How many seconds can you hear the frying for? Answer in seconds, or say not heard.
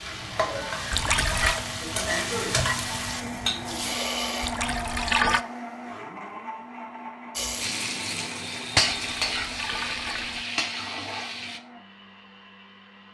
9 s.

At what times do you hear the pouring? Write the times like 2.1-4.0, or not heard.
0.9-1.6, 4.4-5.4, 9.2-10.4.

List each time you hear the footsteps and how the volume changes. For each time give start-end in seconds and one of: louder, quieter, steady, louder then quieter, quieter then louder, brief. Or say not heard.
not heard.